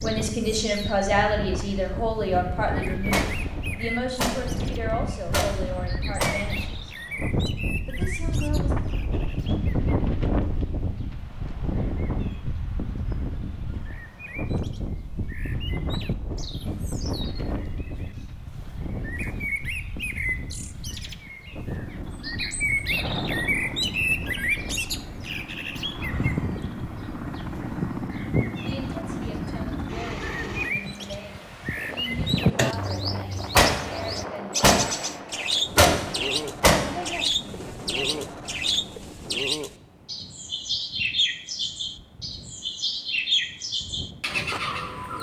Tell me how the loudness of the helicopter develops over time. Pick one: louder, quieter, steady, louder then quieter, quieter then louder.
quieter then louder.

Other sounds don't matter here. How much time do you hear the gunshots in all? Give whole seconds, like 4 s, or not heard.
6 s.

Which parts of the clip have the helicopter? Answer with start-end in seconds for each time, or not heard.
21.7-30.8.